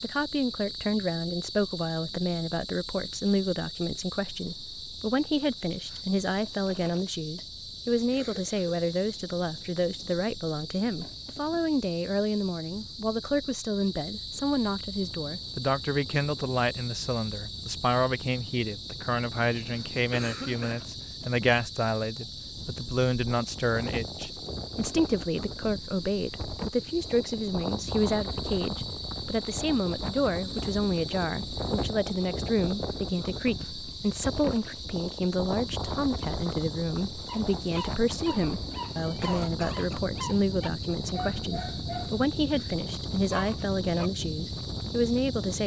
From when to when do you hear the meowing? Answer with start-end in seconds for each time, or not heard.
not heard.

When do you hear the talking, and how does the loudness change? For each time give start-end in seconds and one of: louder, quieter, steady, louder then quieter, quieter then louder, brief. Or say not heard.
0.0-45.6 steady.